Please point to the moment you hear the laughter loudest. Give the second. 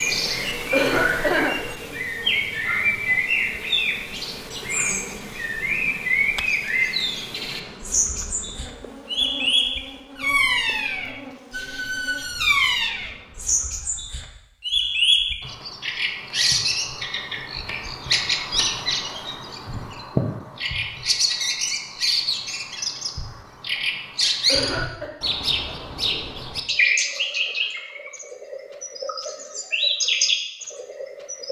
1 s.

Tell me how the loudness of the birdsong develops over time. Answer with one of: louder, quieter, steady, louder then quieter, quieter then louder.
steady.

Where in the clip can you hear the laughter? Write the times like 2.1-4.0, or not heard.
0.7-1.6, 24.4-25.1.